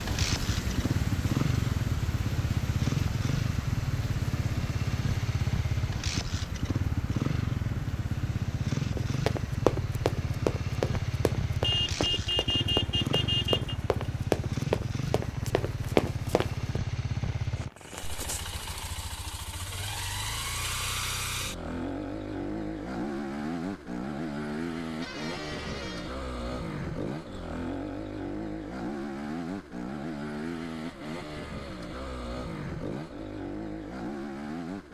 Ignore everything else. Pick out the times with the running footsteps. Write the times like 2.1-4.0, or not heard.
8.9-16.8.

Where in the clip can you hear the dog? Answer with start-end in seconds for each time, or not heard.
not heard.